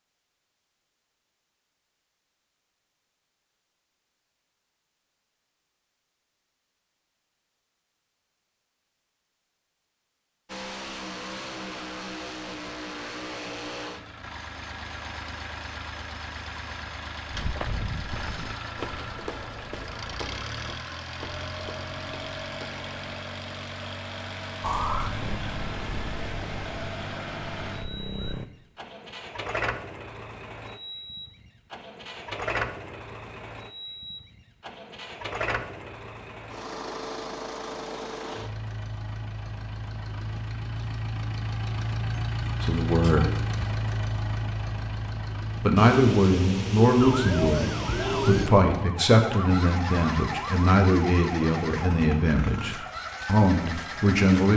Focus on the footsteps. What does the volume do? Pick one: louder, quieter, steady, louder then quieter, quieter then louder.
quieter.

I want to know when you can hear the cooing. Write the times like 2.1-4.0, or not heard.
45.8-48.5.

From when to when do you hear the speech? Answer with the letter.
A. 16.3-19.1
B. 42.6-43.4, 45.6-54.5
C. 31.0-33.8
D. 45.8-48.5
B.